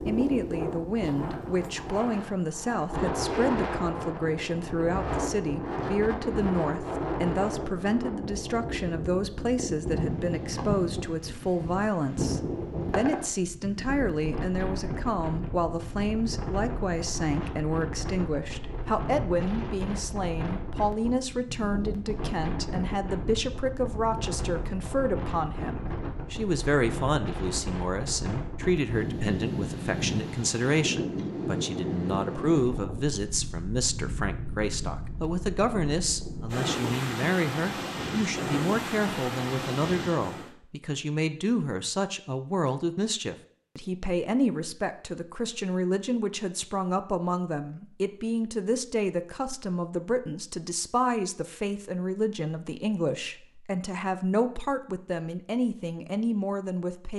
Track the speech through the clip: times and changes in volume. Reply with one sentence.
You can hear the speech from 0.1 to 57.1 s, at a steady volume.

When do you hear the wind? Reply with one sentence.
The wind can be heard from 0.0 to 40.5 s.